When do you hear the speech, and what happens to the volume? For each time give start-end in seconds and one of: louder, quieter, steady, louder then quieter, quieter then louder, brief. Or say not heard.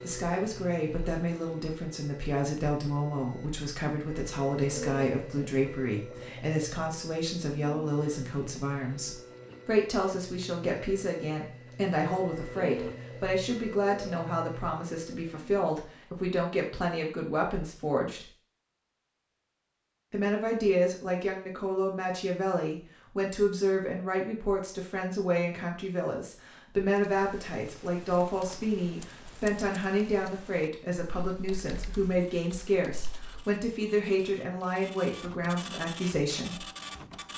0.0-18.2 steady
20.1-36.6 steady.